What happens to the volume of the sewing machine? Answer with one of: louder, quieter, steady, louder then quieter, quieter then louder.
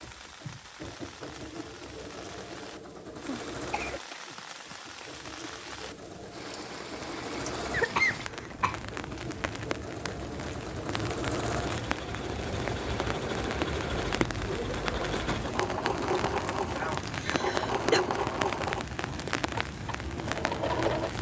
louder.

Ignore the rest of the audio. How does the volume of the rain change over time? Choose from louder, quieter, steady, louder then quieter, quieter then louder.
louder.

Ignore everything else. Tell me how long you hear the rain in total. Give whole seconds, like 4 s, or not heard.
21 s.